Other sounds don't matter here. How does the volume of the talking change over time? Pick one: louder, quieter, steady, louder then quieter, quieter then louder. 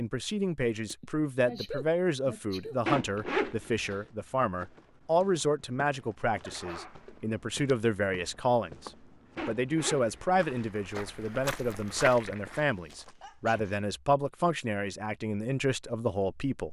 steady.